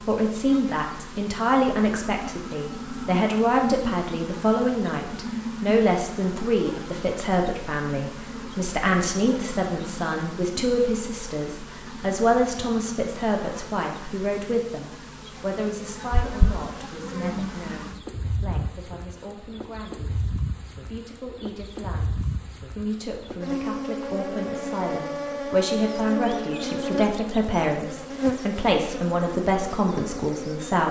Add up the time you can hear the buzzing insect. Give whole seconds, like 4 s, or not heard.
31 s.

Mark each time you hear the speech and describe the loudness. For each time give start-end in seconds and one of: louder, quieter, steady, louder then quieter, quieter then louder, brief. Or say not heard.
0.1-30.8 quieter then louder.